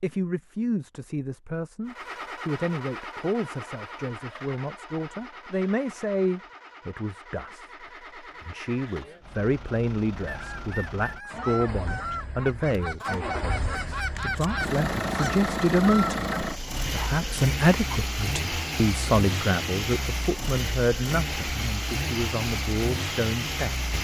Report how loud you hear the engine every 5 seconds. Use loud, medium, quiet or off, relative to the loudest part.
medium, quiet, medium, loud, loud.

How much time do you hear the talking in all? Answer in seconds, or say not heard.
24 s.